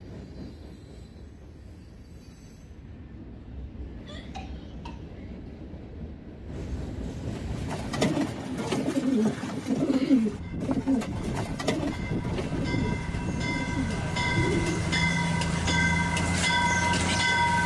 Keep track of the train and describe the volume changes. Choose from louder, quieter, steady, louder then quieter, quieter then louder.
louder.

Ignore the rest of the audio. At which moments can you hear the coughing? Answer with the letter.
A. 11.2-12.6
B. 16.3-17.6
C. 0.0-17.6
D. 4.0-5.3
D.